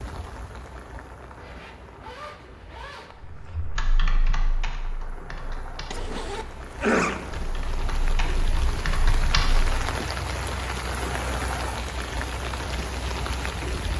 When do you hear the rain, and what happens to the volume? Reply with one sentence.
You can hear the rain from 0.0 to 13.9 s, getting louder.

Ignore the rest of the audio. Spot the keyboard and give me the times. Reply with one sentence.
The keyboard can be heard from 3.2 to 9.7 s.